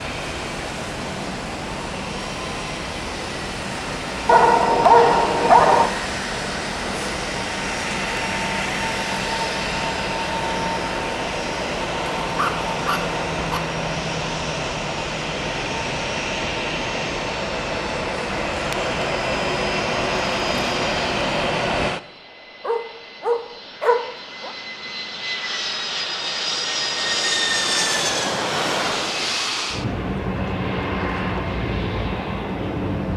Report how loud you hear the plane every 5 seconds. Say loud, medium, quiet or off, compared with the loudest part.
medium, loud, loud, loud, loud, loud, loud.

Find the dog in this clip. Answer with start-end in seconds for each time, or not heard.
4.2-5.9, 12.2-13.6, 22.6-24.5.